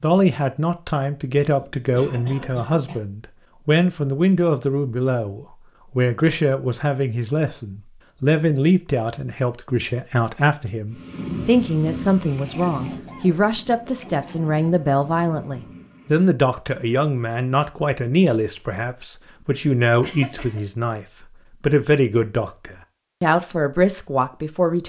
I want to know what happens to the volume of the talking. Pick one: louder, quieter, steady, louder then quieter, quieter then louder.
steady.